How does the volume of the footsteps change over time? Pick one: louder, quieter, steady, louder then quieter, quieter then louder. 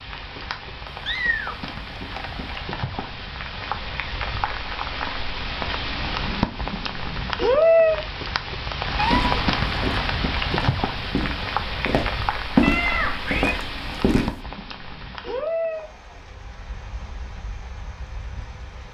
louder then quieter.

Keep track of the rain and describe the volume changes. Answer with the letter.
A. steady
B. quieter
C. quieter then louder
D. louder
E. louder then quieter
E.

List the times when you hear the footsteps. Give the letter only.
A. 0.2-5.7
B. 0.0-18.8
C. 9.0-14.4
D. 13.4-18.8
C.